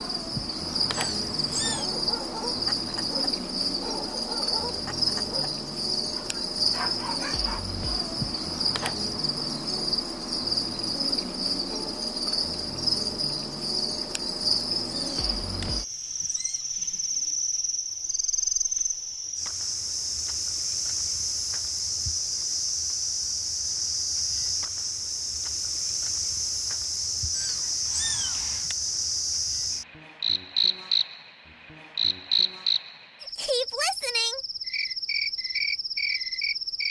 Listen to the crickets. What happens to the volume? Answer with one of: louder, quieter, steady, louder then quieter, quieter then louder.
steady.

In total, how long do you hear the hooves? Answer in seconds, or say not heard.
not heard.